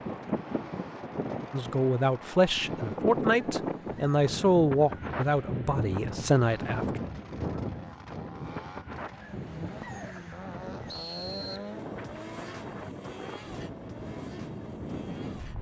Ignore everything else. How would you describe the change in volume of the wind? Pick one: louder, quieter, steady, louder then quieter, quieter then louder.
quieter.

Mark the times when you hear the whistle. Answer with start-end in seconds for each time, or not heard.
10.8-11.7.